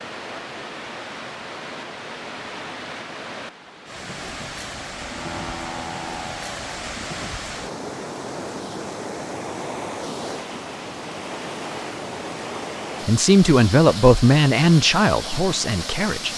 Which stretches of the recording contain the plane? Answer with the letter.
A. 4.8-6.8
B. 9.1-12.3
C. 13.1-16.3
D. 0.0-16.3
A.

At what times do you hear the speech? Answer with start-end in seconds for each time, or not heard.
13.1-16.3.